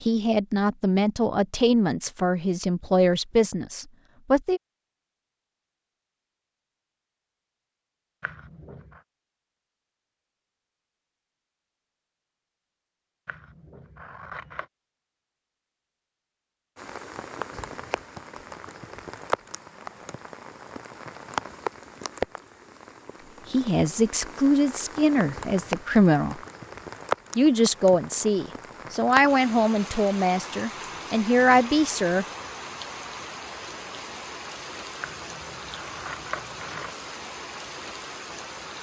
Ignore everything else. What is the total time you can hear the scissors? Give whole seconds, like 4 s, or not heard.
4 s.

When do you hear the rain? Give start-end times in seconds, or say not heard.
16.8-38.7.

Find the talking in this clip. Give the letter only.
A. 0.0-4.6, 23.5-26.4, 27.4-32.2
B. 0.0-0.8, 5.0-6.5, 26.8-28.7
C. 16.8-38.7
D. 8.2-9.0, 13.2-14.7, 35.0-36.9
A.